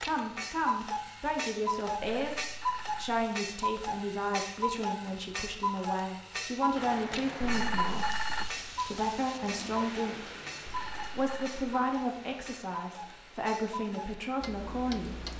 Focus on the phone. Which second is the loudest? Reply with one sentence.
The volume of the phone peaks at 8 seconds.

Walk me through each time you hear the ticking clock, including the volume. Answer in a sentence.
You can hear the ticking clock from 0.0 to 15.3 s, getting quieter.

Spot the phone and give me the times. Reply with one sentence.
You can hear the phone from 2.1 to 3.2 s, from 7.4 to 8.6 s and from 10.7 to 11.6 s.